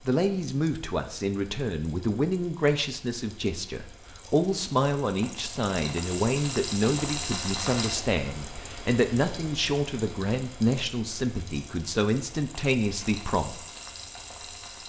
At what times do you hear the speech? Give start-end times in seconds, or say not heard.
0.0-13.6.